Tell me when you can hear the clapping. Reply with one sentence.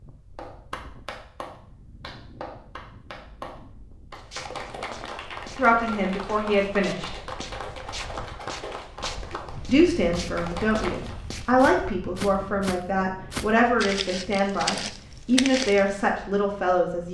You can hear the clapping from 0.3 to 11.2 s.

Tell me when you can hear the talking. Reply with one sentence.
The talking can be heard from 5.5 to 7.1 s and from 9.7 to 17.0 s.